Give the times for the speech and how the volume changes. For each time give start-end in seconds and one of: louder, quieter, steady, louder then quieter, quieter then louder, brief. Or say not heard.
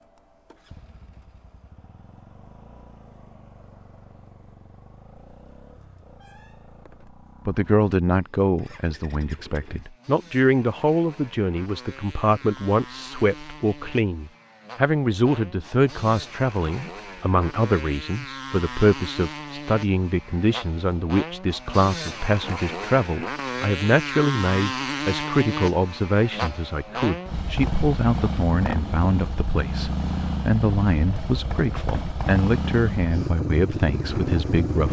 7.5-34.8 steady.